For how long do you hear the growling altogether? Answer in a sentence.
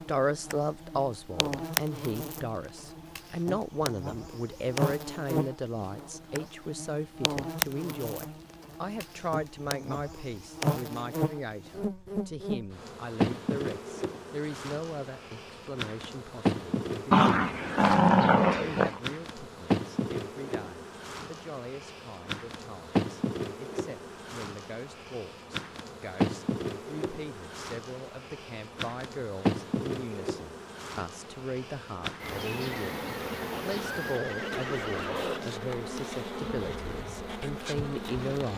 The growling can be heard for 2 seconds in total.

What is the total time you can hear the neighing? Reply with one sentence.
You can hear the neighing for 2 seconds altogether.